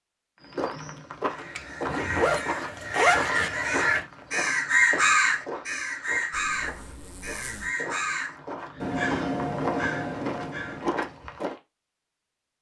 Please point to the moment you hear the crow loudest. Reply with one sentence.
The loudest moment of the crow is at 5 seconds.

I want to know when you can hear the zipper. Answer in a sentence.
You can hear the zipper from 1.6 to 3.5 s and from 6.3 to 7.7 s.